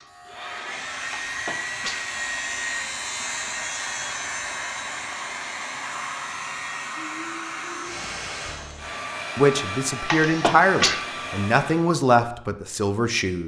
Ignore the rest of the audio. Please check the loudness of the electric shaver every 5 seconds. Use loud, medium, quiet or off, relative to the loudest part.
loud, medium, off.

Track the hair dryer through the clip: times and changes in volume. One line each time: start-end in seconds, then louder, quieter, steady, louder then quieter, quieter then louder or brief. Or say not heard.
0.0-11.9 steady.